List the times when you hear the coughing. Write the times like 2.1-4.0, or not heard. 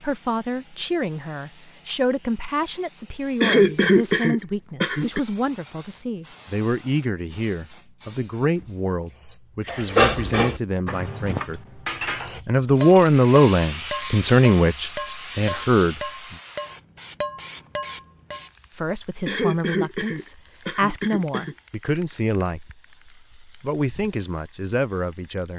3.4-5.2, 19.2-21.6.